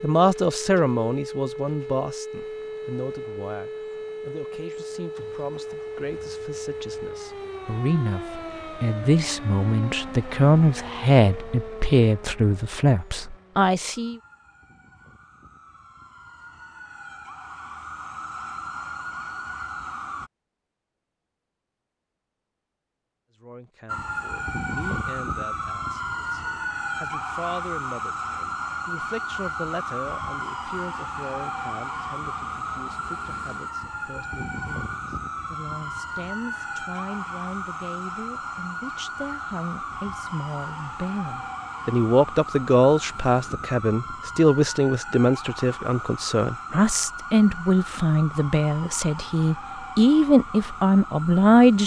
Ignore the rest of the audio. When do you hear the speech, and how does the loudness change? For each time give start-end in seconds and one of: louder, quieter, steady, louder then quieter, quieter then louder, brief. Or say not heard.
0.0-14.2 quieter then louder
23.4-51.8 louder.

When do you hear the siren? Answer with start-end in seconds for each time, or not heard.
0.0-20.3, 23.9-51.8.